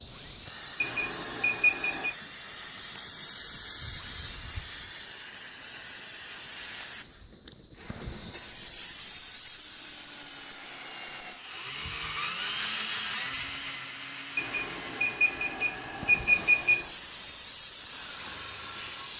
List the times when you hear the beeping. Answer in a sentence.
The beeping can be heard from 0.8 to 2.1 s and from 14.3 to 16.9 s.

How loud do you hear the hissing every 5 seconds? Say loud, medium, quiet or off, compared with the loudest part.
loud, loud, medium, loud.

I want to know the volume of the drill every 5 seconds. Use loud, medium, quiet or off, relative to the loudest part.
quiet, quiet, loud, medium.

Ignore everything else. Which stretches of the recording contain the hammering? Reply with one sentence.
The hammering can't be heard in this clip.